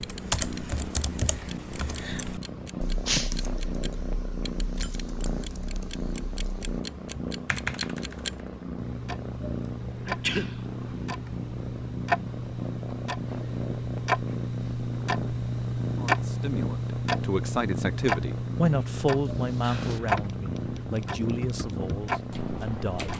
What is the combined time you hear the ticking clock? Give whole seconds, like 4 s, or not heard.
23 s.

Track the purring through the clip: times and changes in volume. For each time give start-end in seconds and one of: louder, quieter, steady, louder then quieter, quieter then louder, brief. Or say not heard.
0.0-23.1 steady.